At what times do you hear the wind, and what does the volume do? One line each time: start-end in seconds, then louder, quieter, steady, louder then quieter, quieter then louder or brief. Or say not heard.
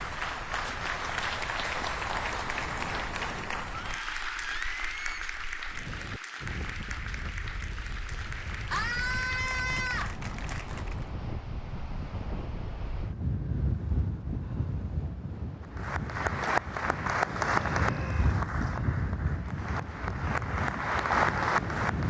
0.0-22.0 louder.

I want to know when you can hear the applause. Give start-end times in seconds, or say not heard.
0.0-11.1, 15.8-22.0.